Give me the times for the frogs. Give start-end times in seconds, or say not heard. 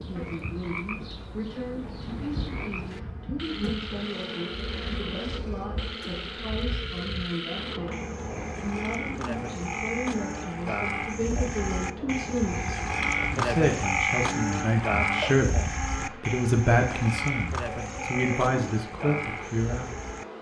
0.0-20.2.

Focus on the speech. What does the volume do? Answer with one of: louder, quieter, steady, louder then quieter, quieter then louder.
louder.